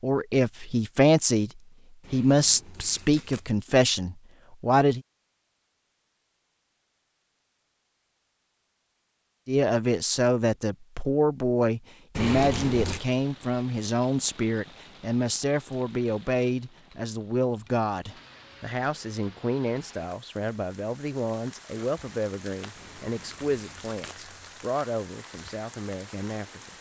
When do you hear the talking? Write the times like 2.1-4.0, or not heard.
0.0-1.5, 2.1-5.0, 9.4-26.7.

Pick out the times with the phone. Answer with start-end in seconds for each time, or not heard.
not heard.